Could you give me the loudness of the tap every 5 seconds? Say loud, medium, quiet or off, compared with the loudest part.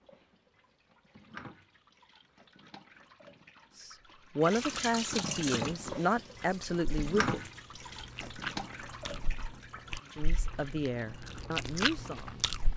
medium, loud, quiet.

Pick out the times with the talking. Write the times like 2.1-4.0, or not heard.
3.8-7.4, 10.1-12.5.